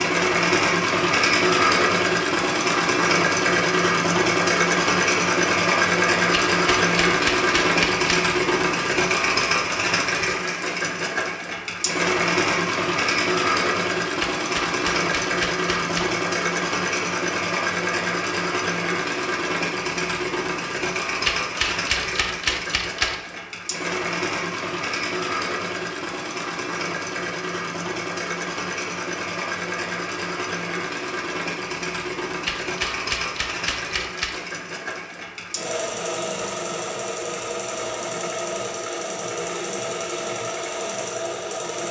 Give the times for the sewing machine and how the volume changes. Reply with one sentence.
You can hear the sewing machine from 0.0 to 41.8 s, getting quieter.